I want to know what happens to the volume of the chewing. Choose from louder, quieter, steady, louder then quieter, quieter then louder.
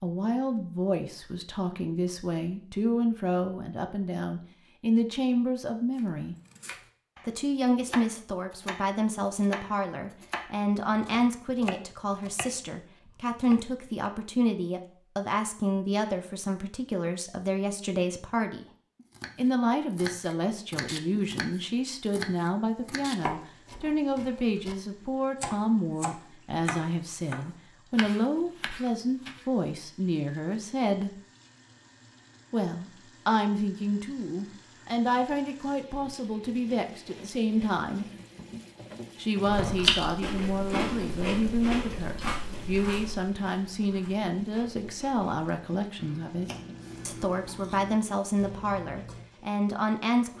quieter.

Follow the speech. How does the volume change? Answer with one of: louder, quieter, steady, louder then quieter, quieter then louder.
steady.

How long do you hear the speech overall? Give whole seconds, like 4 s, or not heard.
46 s.